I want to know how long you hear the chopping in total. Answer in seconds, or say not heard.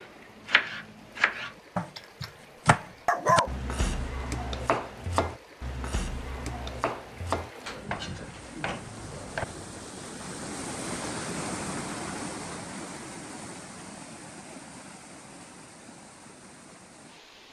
10 s.